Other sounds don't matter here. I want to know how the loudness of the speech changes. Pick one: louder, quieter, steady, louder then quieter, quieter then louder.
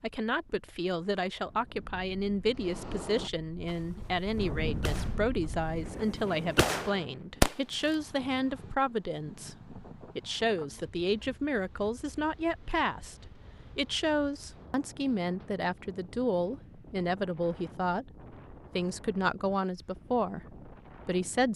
steady.